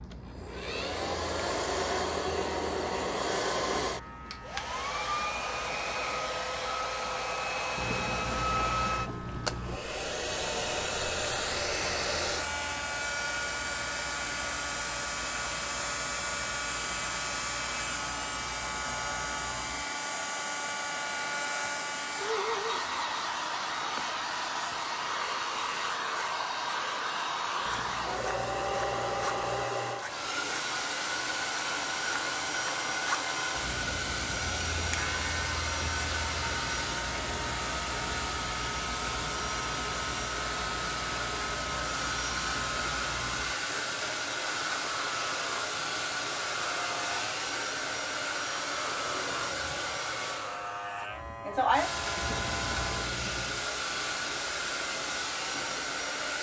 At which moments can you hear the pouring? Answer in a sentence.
The pouring can be heard from 7.8 to 9.8 s, from 27.6 to 29.6 s and from 52.1 to 53.6 s.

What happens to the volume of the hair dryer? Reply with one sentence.
The loudness of the hair dryer stays about the same.